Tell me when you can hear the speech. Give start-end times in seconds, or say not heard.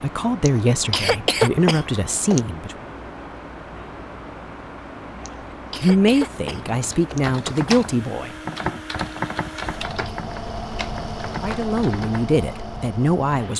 0.0-2.9, 5.8-8.3, 11.4-13.5.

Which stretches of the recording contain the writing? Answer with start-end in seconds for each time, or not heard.
not heard.